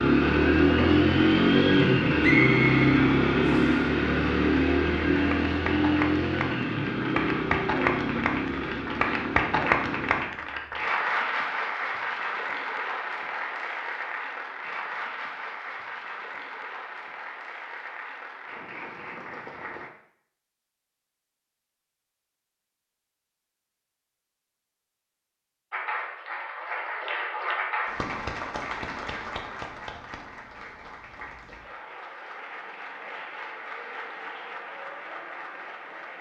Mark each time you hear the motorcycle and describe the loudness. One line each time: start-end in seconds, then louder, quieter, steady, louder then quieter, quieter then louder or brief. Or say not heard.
0.0-10.2 quieter.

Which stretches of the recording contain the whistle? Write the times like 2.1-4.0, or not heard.
2.2-3.8.